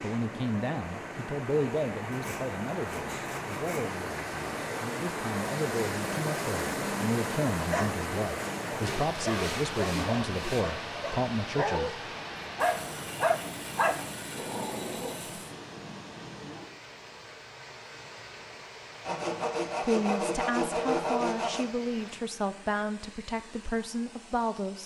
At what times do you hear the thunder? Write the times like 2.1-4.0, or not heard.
not heard.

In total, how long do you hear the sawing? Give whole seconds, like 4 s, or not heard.
9 s.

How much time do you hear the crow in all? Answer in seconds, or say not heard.
not heard.